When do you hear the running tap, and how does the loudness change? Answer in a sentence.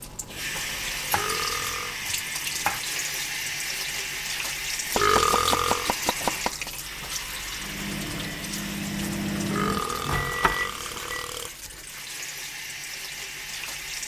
The running tap can be heard from 0.0 to 14.0 s, getting quieter.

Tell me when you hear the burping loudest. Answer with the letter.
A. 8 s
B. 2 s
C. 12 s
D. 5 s
D.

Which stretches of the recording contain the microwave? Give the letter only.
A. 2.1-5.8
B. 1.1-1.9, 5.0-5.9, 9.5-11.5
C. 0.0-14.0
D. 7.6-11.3
D.